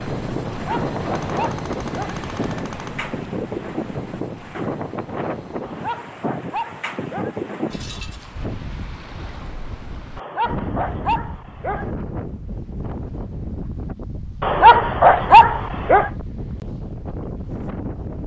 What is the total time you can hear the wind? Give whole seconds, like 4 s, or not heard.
18 s.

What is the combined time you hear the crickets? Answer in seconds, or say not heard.
not heard.